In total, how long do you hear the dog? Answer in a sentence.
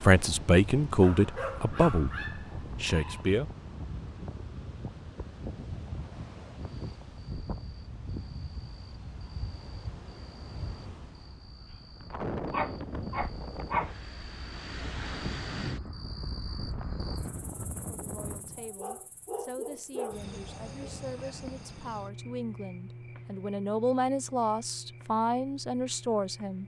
The dog can be heard for 5 seconds in total.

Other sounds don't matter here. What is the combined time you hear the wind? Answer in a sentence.
You can hear the wind for 19 seconds altogether.